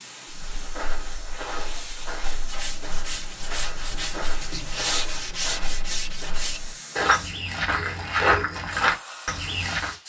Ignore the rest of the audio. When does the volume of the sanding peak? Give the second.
5 s.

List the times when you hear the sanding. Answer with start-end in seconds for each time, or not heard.
2.5-6.6.